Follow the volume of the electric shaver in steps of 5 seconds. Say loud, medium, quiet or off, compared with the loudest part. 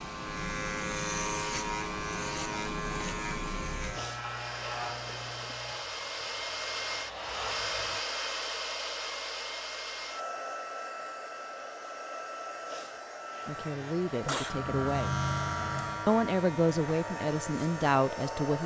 loud, quiet, medium, loud.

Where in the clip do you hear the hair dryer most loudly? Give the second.
8 s.